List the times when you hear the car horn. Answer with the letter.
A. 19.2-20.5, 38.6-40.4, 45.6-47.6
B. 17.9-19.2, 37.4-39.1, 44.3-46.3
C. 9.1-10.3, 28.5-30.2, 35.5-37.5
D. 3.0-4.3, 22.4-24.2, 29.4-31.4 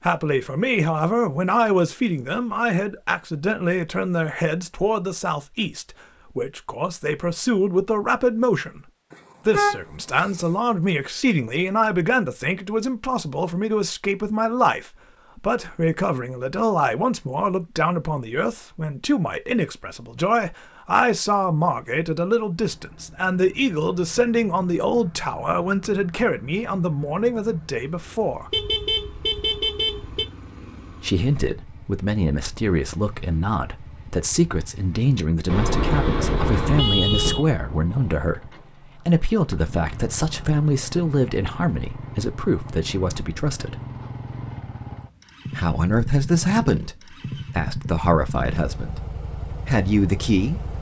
C.